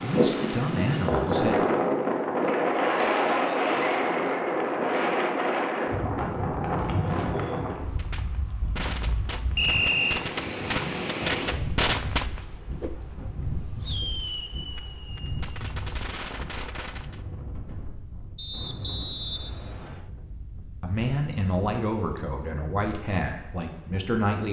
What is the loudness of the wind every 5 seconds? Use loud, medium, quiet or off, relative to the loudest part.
loud, medium, medium, quiet, quiet.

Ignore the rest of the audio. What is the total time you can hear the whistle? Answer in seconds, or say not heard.
3 s.